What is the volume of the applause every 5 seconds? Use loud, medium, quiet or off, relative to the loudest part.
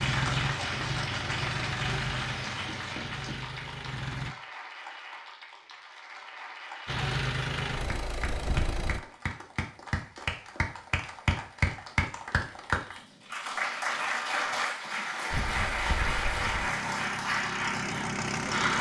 medium, medium, loud, loud.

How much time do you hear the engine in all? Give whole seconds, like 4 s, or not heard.
10 s.